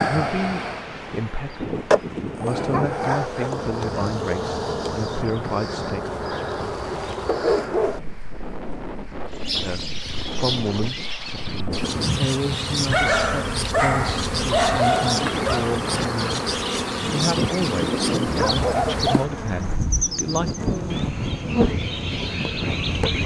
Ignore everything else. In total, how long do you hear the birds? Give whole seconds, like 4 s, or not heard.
14 s.